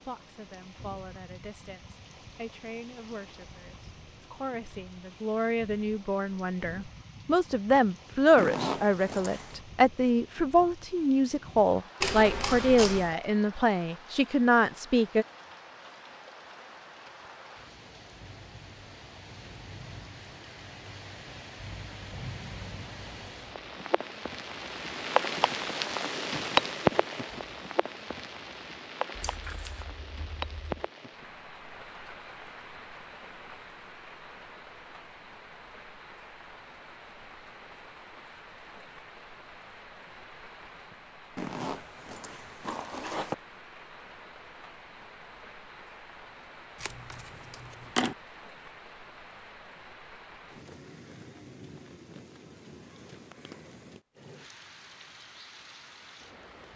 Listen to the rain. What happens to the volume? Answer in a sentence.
The loudness of the rain goes up, then down.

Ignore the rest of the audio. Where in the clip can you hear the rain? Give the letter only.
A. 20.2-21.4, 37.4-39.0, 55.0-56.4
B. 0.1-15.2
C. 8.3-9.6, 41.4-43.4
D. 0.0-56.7
D.